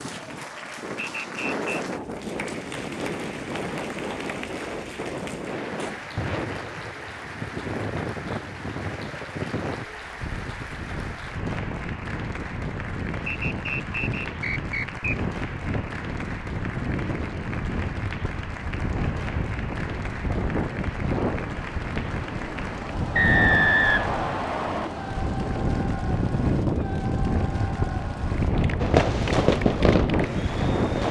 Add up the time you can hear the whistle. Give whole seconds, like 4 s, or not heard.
4 s.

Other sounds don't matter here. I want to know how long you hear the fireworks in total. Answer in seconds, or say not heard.
2 s.